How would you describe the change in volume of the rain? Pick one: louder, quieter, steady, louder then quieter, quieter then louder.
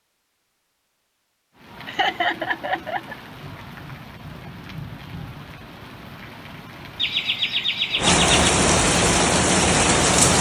louder.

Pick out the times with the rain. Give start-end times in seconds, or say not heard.
1.6-10.3.